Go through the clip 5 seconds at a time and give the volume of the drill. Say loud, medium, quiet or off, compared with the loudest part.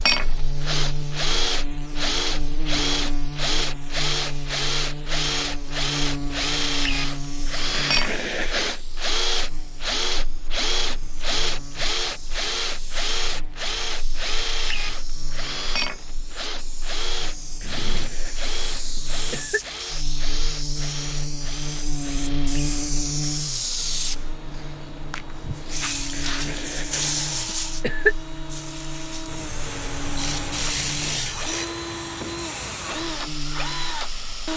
loud, loud, loud, medium, quiet, quiet, medium.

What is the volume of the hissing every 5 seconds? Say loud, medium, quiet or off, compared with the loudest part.
quiet, quiet, quiet, medium, loud, loud, loud.